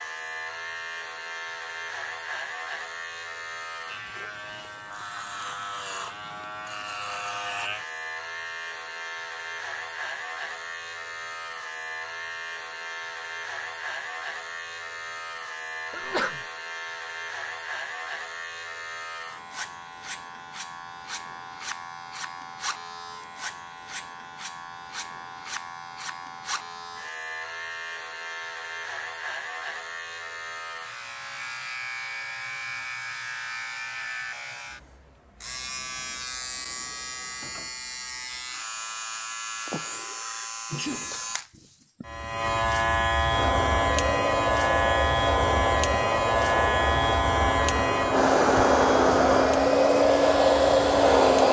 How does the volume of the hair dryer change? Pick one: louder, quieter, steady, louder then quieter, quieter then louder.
louder.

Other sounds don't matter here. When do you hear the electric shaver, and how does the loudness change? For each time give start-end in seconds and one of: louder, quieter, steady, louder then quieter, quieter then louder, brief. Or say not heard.
0.0-51.4 louder.